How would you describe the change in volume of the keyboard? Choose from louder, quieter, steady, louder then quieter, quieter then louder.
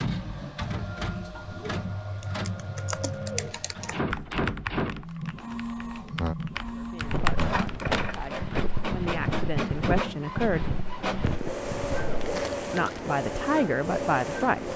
quieter then louder.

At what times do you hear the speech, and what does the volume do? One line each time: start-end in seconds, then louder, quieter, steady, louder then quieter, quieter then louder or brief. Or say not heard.
6.7-10.7 louder
12.0-14.7 brief.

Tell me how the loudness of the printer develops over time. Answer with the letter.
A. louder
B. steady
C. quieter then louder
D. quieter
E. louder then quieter
B.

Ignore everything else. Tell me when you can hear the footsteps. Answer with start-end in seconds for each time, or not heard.
7.0-12.2.